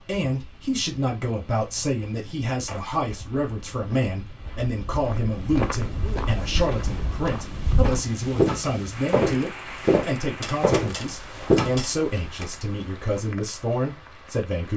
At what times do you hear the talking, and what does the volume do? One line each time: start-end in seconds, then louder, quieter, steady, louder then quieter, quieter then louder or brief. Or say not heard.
0.0-14.7 steady.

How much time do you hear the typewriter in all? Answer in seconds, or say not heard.
2 s.